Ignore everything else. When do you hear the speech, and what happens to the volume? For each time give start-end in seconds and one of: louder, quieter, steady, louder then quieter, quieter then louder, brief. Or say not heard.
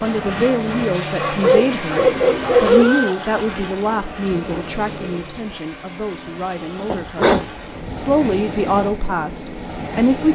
0.0-10.3 quieter then louder.